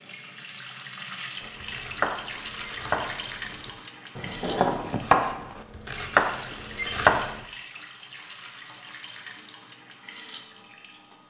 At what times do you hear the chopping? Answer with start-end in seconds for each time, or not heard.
1.4-7.4.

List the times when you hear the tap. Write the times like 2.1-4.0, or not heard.
0.0-11.2.